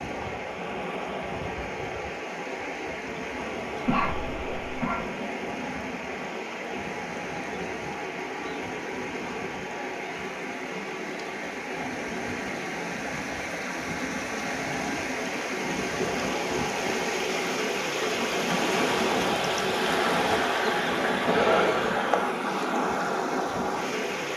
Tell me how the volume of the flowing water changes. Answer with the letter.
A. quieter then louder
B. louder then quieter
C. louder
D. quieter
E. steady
C.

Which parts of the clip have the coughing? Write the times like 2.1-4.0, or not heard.
3.9-5.0, 21.2-22.0.